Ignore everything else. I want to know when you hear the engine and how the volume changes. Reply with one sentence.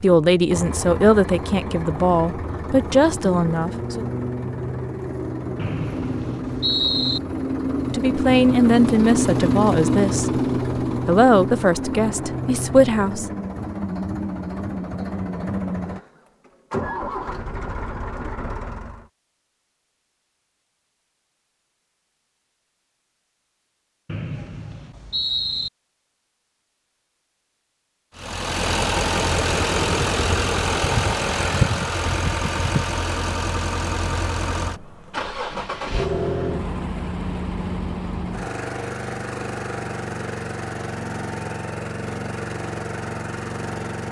You can hear the engine from 0.0 to 19.1 s, getting louder then quieter; and from 28.1 to 44.0 s, getting quieter.